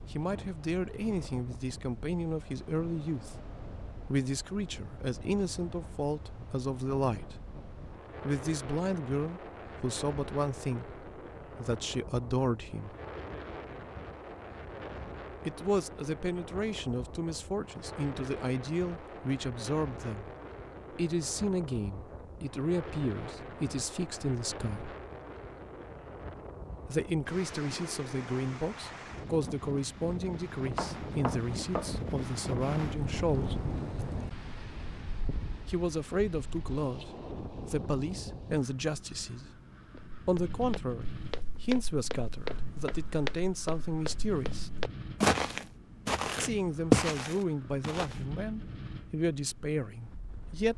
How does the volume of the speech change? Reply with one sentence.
The volume of the speech stays about the same.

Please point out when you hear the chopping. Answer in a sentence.
You can hear the chopping from 30.8 to 31.9 s.